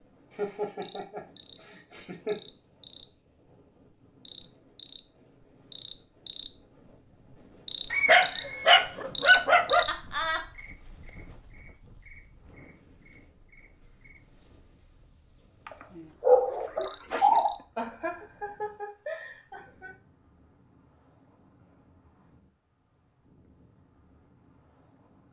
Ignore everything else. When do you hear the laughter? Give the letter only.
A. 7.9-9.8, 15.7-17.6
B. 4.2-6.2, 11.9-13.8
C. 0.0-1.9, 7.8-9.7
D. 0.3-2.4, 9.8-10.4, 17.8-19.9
D.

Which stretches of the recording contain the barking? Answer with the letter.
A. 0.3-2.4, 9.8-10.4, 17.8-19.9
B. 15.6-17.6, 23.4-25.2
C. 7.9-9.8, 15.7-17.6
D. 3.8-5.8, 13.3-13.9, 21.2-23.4
C.